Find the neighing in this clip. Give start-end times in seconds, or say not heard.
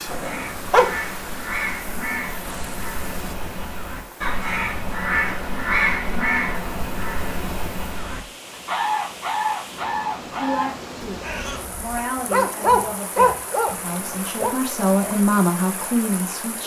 not heard.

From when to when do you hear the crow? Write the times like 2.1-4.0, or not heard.
0.1-12.1.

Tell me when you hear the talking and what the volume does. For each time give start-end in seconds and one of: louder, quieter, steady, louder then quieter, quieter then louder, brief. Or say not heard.
10.3-16.6 louder.